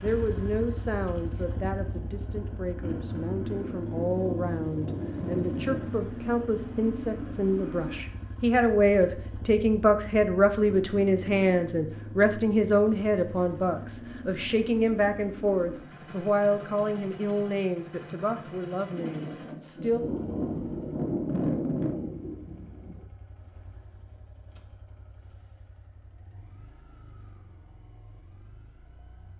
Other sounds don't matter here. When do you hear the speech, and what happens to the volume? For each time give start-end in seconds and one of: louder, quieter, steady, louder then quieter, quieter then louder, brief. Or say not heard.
0.0-20.0 louder then quieter.